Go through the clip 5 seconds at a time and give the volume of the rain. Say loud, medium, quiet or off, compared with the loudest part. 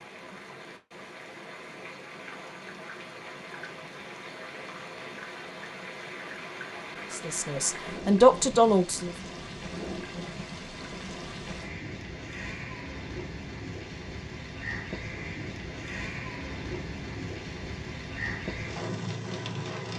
medium, loud, loud, loud.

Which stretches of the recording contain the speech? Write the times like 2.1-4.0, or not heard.
7.1-9.2.